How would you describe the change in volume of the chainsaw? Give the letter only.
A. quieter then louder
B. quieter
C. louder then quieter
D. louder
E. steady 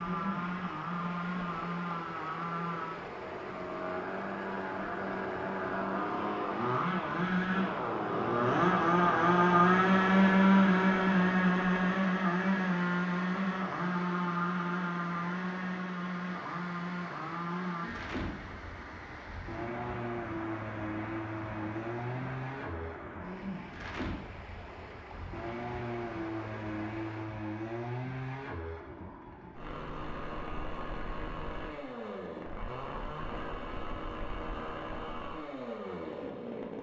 C.